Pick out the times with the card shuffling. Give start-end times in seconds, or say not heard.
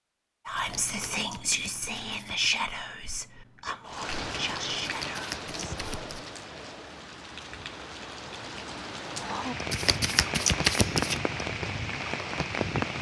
0.6-2.5, 4.8-6.2, 9.7-11.2.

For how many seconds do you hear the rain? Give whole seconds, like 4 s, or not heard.
9 s.